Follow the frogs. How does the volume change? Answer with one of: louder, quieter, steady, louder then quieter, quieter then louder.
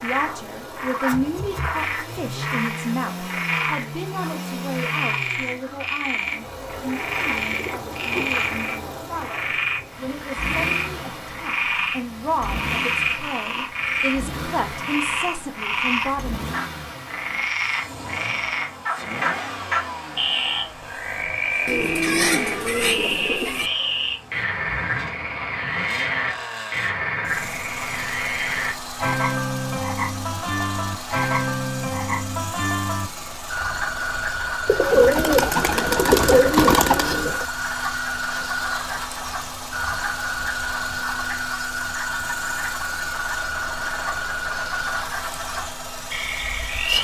steady.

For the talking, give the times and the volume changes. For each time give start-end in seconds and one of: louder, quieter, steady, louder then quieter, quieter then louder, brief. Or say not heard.
0.0-16.4 quieter then louder.